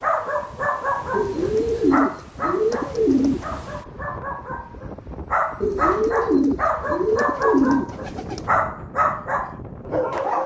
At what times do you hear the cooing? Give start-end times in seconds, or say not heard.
1.1-3.5, 5.6-8.4.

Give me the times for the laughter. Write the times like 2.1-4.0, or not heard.
not heard.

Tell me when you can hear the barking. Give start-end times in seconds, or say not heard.
0.0-10.4.